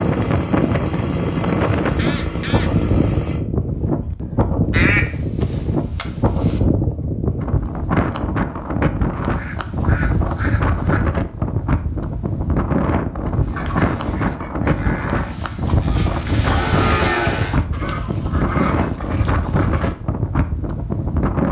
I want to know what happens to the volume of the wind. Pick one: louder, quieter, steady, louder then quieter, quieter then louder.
steady.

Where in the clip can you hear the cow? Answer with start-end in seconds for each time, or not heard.
13.3-17.6.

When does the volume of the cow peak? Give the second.
17 s.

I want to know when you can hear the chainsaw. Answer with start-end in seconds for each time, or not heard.
0.0-3.4.